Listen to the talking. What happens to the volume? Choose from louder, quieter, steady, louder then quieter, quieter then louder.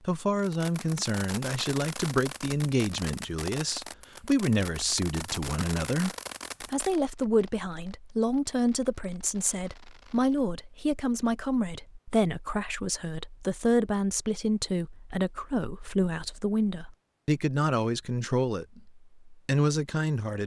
steady.